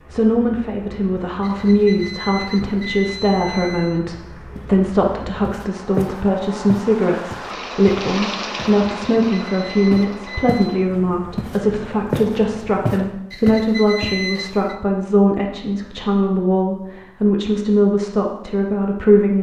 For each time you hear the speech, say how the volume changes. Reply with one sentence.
You can hear the speech from 0.1 to 19.3 s, at a steady volume.